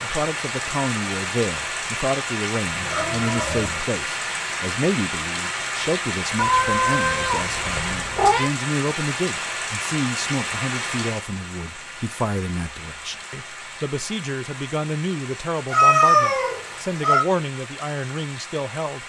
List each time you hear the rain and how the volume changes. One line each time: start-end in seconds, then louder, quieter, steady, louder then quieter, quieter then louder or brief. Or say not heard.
0.0-19.0 quieter.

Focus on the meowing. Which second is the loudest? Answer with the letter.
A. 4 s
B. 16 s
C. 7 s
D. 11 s
B.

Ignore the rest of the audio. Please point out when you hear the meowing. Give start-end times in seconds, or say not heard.
2.7-3.8, 6.3-8.5, 15.7-17.2.